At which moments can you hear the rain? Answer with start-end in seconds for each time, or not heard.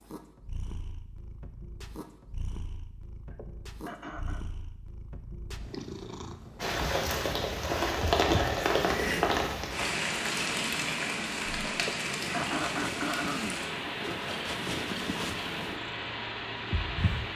6.6-17.3.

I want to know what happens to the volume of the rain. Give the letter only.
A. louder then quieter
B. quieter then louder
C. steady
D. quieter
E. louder
D.